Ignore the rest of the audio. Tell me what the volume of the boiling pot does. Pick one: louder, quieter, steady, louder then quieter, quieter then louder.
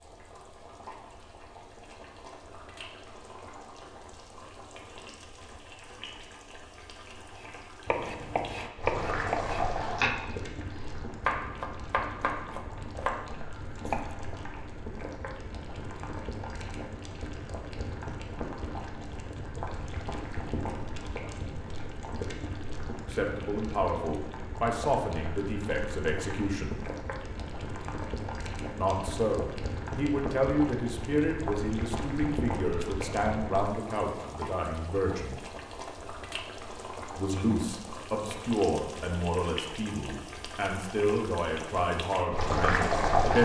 louder.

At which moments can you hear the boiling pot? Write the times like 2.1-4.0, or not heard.
0.0-43.4.